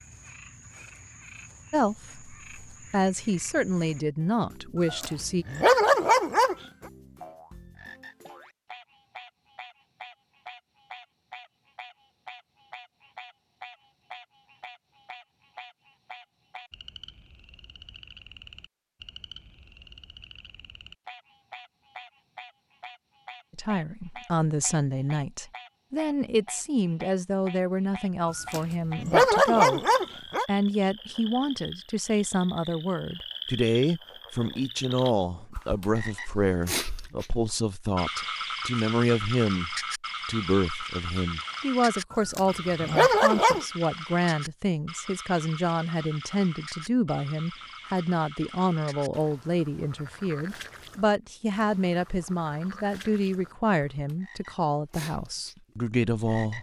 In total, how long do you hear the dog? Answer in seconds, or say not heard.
5 s.